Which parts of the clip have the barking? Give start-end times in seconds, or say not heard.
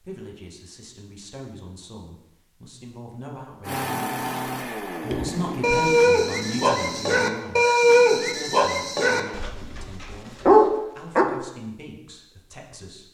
5.1-11.2.